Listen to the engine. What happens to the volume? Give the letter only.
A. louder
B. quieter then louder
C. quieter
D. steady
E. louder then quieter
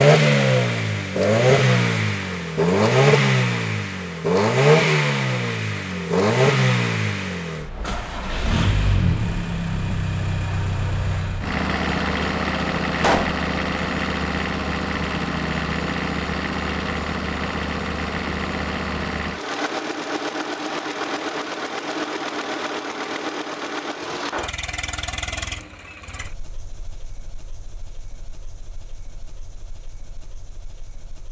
C.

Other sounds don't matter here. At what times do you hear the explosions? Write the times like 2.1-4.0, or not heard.
12.9-13.4.